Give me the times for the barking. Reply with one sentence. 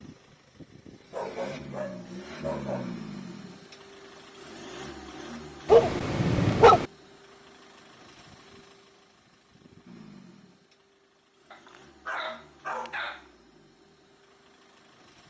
You can hear the barking from 1.1 to 3.0 s, from 5.7 to 6.8 s and from 11.5 to 13.2 s.